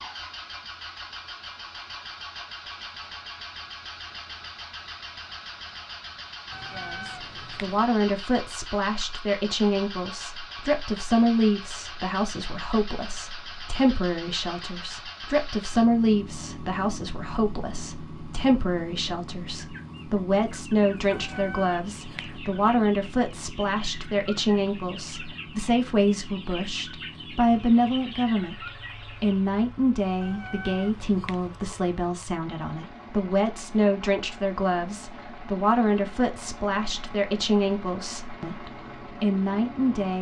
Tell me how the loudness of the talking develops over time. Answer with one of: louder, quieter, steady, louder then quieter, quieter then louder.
steady.